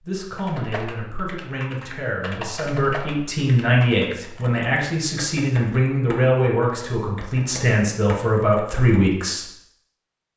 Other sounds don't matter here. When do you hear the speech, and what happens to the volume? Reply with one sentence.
The speech can be heard from 0.0 to 9.4 s, getting louder.